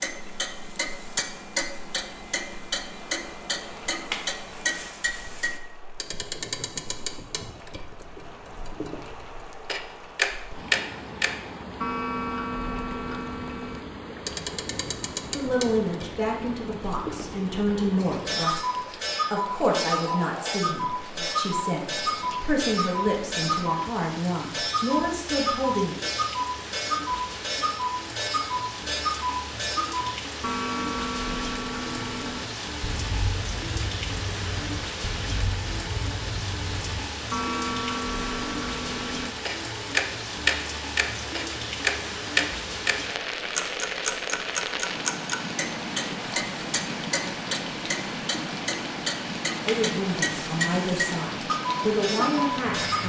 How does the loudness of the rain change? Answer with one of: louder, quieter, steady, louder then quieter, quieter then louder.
louder.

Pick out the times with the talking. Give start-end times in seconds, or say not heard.
15.3-25.9, 49.6-53.0.